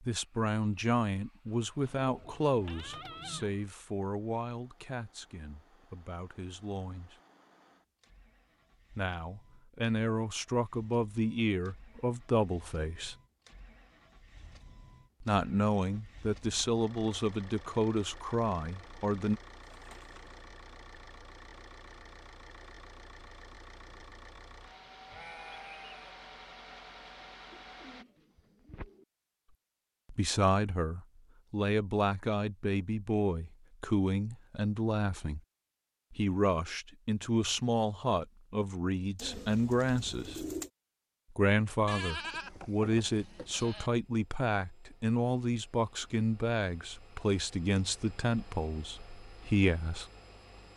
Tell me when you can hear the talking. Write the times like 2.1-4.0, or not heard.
0.0-7.2, 8.9-13.2, 15.2-19.4, 30.1-35.4, 36.1-40.4, 41.3-50.0.